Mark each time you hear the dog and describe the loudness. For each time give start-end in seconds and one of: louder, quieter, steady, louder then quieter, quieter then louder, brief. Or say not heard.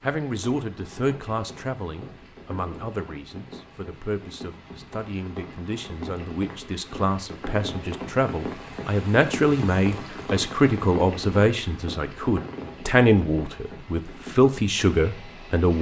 not heard.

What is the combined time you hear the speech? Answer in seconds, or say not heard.
16 s.